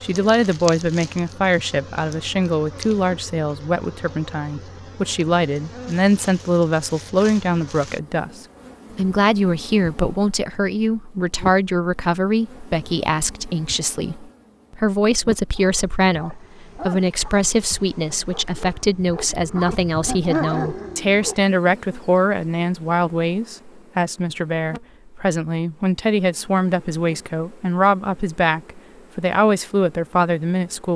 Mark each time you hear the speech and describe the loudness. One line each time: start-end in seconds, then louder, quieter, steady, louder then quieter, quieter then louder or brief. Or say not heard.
0.0-30.9 steady.